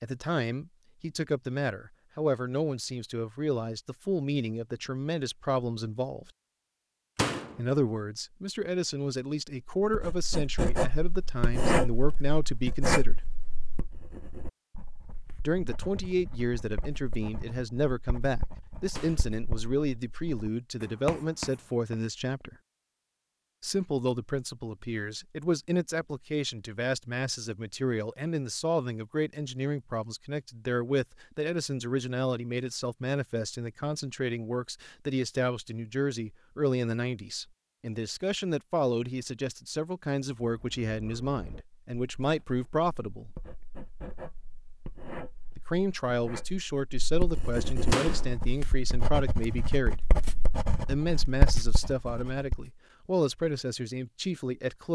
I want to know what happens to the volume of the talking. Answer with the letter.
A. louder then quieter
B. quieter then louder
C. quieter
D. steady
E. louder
D.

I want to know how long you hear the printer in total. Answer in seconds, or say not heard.
not heard.